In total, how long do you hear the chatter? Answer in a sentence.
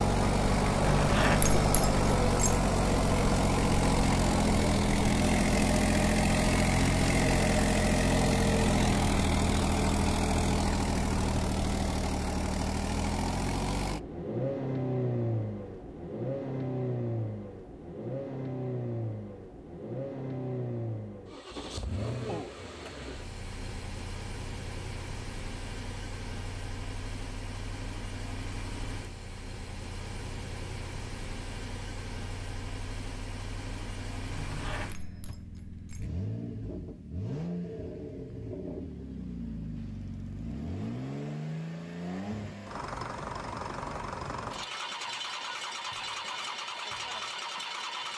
You can't hear the chatter here.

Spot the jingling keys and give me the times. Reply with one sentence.
The jingling keys can be heard from 0.8 to 2.5 s and from 34.3 to 36.0 s.